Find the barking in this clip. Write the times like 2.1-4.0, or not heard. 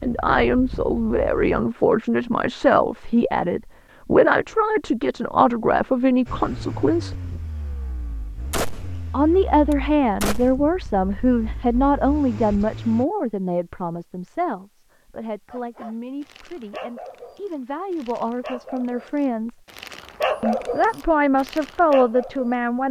15.4-22.6.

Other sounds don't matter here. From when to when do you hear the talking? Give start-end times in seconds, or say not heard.
0.0-7.2, 9.1-19.6, 20.4-22.8.